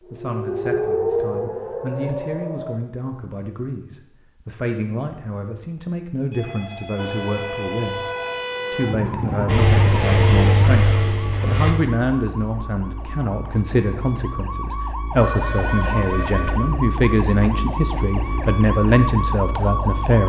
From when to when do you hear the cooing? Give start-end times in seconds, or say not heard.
not heard.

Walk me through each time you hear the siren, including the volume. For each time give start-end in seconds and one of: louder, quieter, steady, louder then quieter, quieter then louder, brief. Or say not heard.
0.0-2.8 brief
7.0-20.2 quieter then louder.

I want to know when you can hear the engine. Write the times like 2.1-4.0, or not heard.
9.4-11.8.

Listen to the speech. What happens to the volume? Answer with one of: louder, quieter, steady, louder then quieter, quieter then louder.
louder.